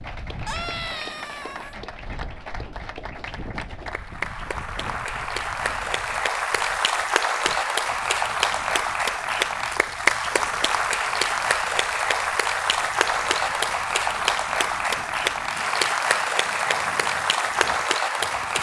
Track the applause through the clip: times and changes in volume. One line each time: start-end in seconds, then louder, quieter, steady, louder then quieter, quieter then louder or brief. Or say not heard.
0.0-18.5 louder.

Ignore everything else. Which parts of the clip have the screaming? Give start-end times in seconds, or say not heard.
0.5-1.8.